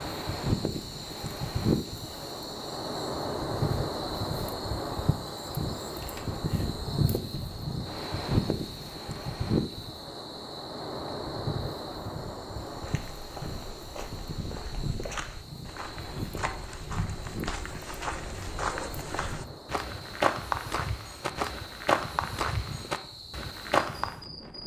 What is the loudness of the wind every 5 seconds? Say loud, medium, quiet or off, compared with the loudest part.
loud, loud, medium, medium, quiet.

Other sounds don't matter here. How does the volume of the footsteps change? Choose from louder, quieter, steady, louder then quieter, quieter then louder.
louder.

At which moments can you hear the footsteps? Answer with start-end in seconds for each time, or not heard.
12.7-24.2.